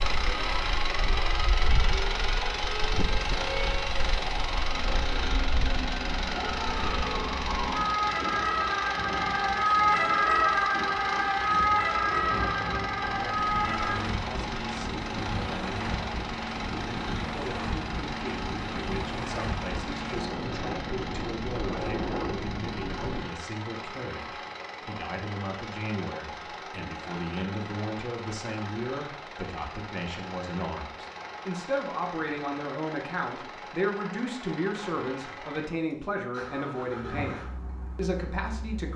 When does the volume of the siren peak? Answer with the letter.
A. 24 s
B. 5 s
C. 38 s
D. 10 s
D.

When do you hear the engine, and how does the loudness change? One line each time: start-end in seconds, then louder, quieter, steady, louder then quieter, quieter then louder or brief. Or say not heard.
0.0-38.9 quieter.